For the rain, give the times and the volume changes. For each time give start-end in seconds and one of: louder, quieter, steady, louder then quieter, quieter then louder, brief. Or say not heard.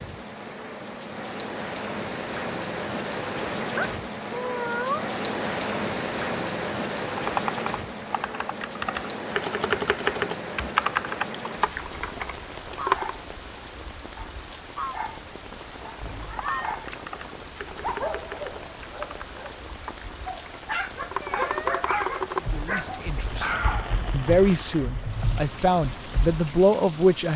0.0-27.3 quieter.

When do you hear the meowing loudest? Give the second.
5 s.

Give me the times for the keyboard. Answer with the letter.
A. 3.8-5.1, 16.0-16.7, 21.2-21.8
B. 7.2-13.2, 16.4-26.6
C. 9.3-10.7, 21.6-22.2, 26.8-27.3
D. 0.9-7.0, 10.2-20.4
B.